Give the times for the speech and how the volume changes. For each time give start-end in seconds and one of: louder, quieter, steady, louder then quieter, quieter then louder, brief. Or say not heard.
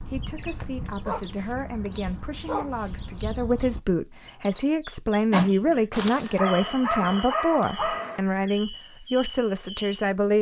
0.0-10.3 louder.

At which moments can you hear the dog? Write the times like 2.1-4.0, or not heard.
0.6-3.0, 5.9-8.2.